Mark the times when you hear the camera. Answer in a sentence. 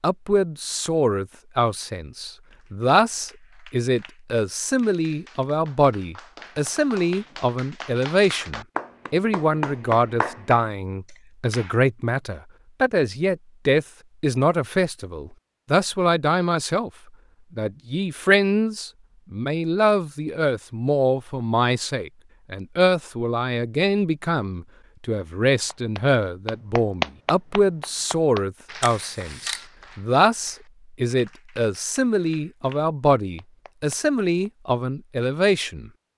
You can hear the camera from 28.8 to 29.6 s.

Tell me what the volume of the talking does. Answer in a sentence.
The volume of the talking stays about the same.